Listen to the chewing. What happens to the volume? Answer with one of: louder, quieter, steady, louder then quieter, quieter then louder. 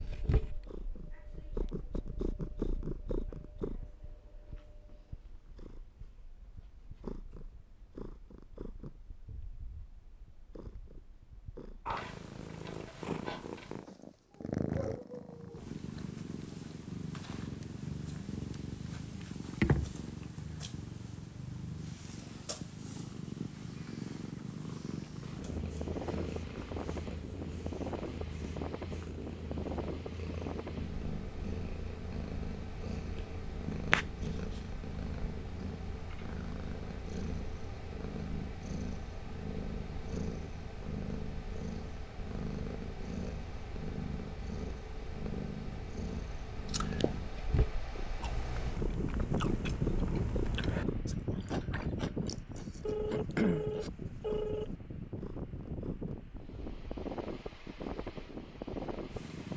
louder.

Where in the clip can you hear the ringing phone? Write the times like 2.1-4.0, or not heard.
52.9-54.7.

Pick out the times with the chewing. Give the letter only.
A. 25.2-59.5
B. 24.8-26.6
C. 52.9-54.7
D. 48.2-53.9
D.